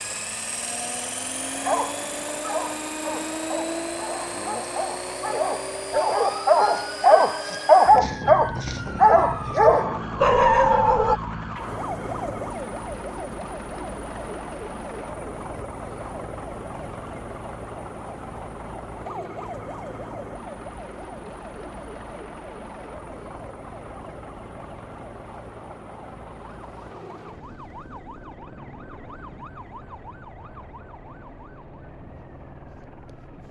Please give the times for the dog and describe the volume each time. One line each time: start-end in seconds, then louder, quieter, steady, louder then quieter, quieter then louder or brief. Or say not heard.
1.6-11.2 louder.